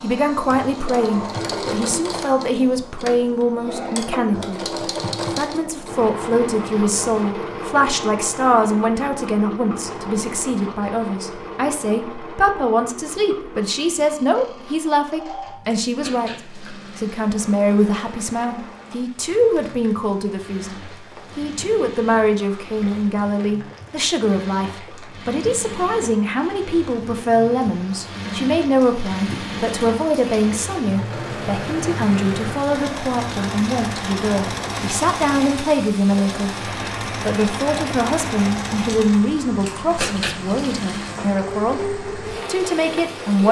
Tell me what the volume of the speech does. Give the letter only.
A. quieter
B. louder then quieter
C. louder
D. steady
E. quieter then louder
D.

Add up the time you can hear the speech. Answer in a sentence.
You can hear the speech for 43 seconds altogether.